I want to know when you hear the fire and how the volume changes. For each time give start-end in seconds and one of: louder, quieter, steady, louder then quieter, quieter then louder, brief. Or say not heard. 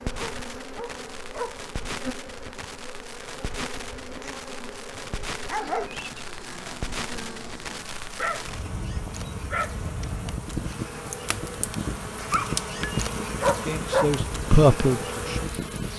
0.0-15.9 louder.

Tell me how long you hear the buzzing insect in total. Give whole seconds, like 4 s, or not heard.
16 s.